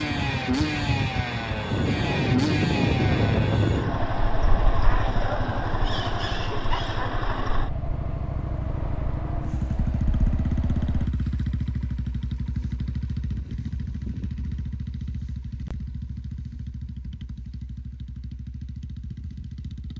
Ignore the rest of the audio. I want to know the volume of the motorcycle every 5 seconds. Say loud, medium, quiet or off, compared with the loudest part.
loud, loud, loud, medium.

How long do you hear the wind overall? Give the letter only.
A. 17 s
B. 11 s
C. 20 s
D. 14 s
B.